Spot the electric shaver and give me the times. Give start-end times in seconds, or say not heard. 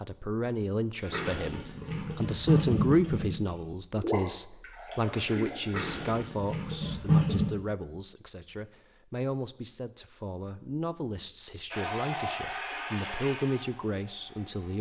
not heard.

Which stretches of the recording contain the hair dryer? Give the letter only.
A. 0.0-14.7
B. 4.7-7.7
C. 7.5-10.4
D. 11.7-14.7
D.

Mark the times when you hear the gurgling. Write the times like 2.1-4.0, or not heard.
1.0-7.5.